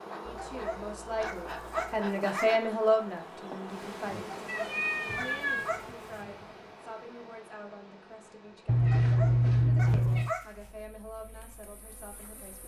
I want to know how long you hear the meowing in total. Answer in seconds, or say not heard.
5 s.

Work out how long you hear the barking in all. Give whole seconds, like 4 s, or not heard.
6 s.